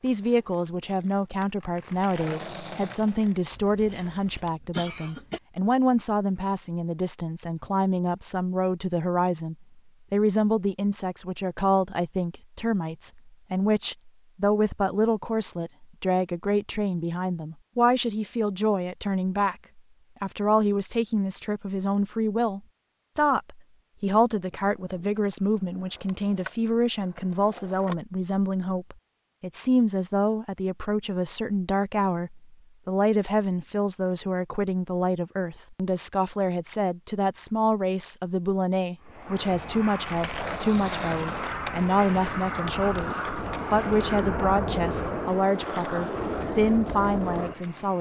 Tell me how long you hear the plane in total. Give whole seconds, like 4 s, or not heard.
9 s.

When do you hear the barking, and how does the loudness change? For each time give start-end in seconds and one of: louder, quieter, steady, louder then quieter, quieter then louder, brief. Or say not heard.
not heard.